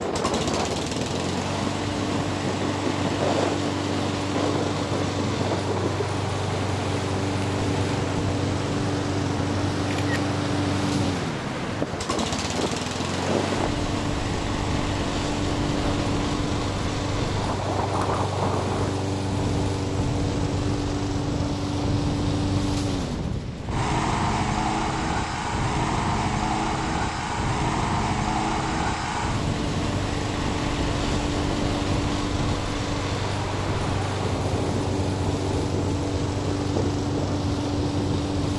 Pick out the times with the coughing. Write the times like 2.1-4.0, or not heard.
not heard.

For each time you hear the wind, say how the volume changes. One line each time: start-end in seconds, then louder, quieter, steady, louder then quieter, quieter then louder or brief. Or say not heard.
0.0-38.5 steady.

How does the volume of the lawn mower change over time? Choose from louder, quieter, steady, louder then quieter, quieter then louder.
steady.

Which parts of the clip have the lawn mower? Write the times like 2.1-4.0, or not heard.
0.0-38.5.